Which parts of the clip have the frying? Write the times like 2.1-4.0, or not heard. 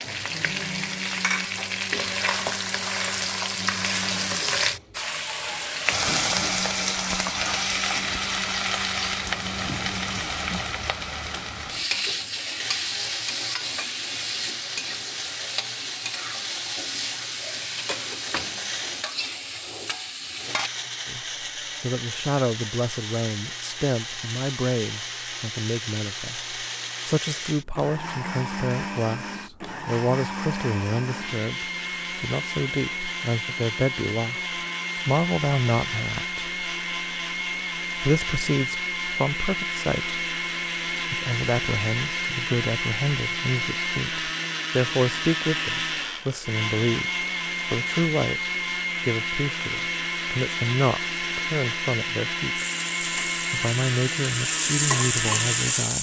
0.0-20.7, 52.5-55.9.